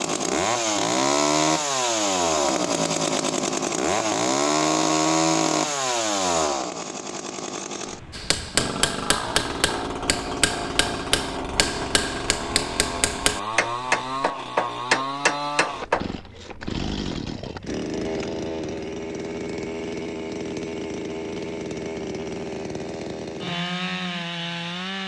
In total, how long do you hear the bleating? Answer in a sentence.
You can't hear the bleating here.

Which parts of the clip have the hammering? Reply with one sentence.
You can hear the hammering from 8.1 to 16.1 s.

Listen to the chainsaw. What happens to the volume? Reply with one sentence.
The volume of the chainsaw goes down.